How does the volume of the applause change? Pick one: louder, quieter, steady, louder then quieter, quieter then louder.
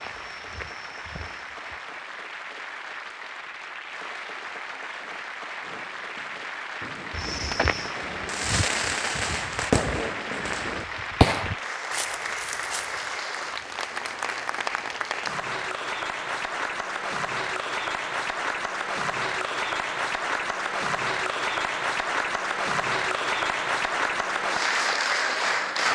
louder.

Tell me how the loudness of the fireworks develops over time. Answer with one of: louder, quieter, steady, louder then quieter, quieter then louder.
louder then quieter.